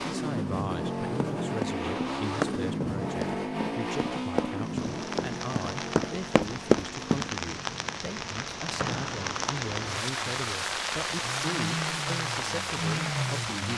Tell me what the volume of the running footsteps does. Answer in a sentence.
The loudness of the running footsteps goes down, then up.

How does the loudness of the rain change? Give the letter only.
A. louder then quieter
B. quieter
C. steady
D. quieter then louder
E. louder
E.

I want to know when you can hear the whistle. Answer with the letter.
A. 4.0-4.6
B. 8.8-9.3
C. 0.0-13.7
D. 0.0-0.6
B.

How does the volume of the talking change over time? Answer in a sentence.
The loudness of the talking stays about the same.